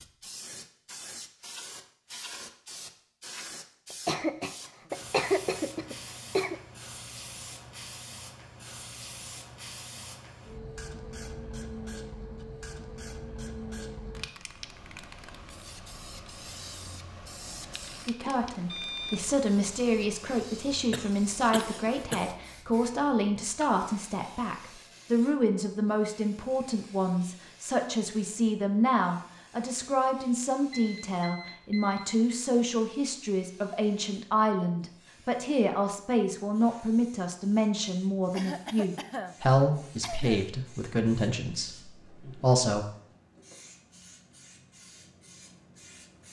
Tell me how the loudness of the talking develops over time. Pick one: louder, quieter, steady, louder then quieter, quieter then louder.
steady.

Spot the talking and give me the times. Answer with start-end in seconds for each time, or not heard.
18.1-42.9.